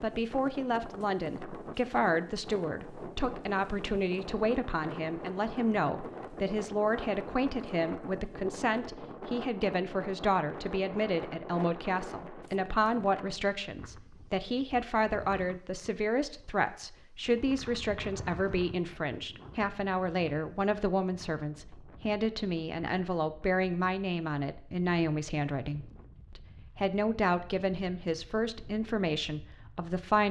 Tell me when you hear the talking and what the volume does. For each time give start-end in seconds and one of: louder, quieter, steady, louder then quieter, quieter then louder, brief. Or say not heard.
0.0-30.2 steady.